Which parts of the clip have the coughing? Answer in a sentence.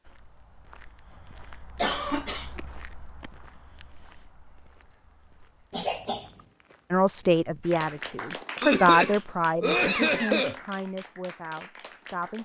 You can hear the coughing from 1.8 to 2.5 s, from 5.7 to 6.3 s and from 8.6 to 10.6 s.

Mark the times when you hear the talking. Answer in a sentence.
The talking can be heard from 6.9 to 12.4 s.